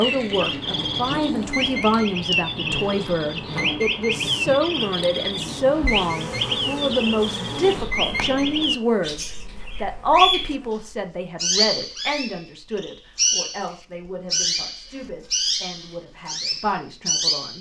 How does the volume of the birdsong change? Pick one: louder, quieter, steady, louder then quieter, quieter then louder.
steady.